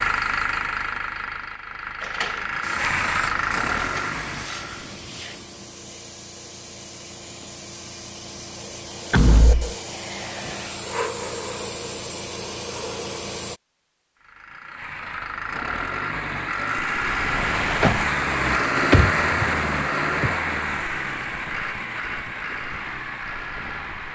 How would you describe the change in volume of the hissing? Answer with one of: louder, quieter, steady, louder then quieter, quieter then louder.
louder.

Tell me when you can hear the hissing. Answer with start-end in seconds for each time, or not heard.
2.6-13.6.